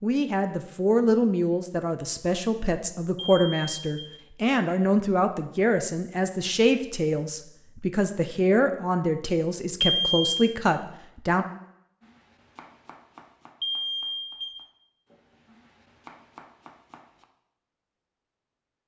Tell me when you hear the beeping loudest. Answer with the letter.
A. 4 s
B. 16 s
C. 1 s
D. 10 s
D.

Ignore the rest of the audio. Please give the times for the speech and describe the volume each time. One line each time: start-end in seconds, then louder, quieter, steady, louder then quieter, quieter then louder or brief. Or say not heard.
0.0-11.4 steady.